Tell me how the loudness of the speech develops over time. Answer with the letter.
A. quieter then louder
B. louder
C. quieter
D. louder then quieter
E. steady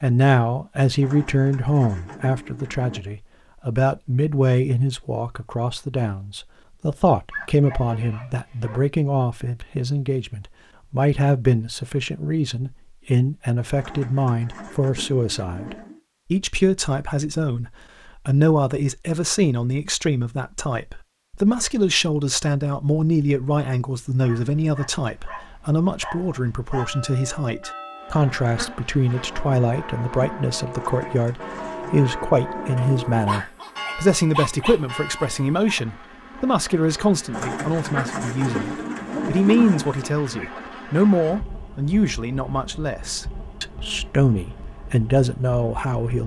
E.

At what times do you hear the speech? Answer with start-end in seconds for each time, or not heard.
0.0-46.2.